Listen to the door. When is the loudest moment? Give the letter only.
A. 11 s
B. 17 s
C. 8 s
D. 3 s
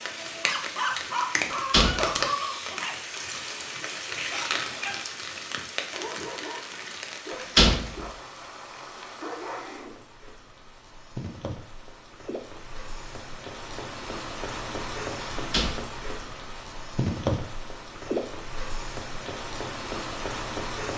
C.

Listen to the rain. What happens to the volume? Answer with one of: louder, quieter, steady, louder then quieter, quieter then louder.
quieter then louder.